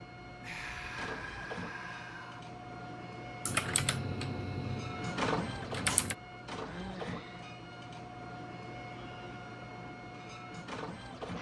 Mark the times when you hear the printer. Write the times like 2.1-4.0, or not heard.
0.0-11.3.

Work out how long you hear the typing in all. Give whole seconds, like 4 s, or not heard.
3 s.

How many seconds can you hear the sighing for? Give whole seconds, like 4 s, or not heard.
3 s.